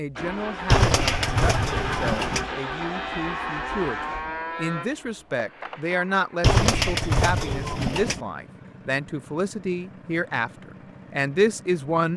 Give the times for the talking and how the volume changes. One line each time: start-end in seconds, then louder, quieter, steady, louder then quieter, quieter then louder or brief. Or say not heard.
0.0-12.1 louder.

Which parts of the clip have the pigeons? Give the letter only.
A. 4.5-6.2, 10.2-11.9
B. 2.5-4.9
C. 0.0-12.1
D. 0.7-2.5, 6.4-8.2
D.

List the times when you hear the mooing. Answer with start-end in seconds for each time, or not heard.
2.5-4.9.